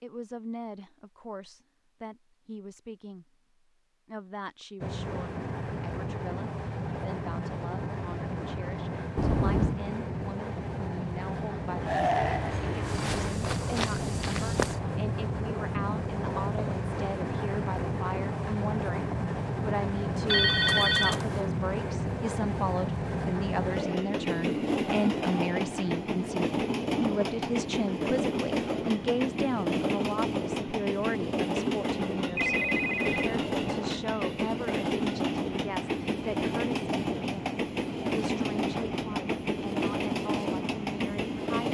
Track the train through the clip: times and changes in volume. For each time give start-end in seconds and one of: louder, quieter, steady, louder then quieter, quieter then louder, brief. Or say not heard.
4.8-41.6 steady.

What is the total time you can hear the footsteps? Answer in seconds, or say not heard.
2 s.